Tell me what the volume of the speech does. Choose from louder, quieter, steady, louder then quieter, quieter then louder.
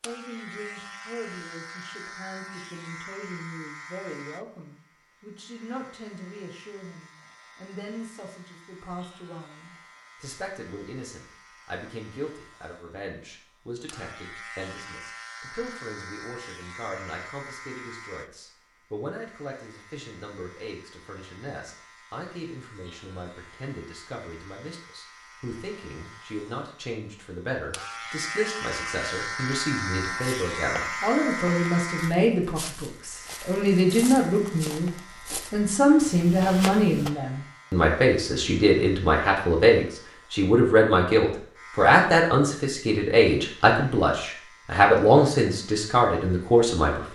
louder.